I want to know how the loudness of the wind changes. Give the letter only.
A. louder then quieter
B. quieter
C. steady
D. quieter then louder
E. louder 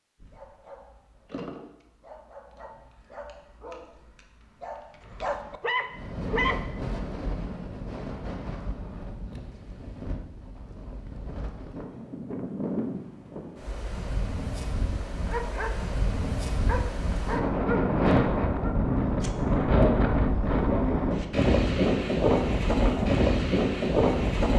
E.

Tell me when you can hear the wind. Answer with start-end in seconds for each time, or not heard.
5.9-24.5.